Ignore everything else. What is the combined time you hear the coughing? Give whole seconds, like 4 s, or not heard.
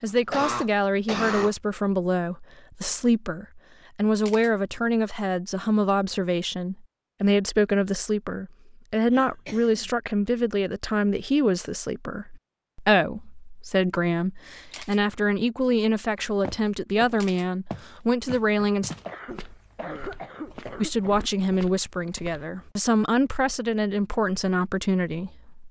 5 s.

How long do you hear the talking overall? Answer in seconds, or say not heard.
24 s.